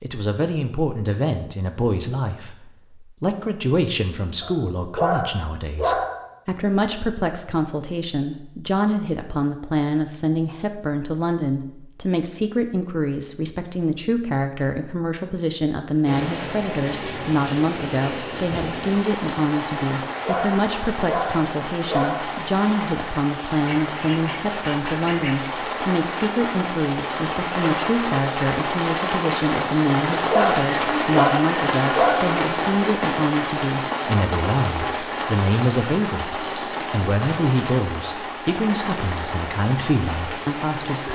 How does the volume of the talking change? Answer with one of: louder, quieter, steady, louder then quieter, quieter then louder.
steady.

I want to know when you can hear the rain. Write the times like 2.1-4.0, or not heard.
16.1-41.1.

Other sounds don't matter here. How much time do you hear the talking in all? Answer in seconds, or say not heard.
41 s.